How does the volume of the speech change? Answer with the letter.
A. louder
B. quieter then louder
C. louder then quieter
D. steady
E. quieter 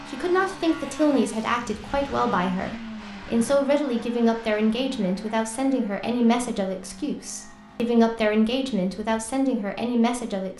D.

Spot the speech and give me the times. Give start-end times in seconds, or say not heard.
0.1-10.5.